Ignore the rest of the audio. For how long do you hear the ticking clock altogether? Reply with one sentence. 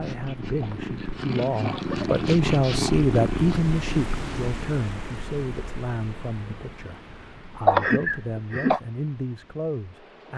The ticking clock can't be heard in this clip.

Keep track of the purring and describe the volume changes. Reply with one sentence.
The loudness of the purring goes up, then down.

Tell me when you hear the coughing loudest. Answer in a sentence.
The volume of the coughing peaks at 8 seconds.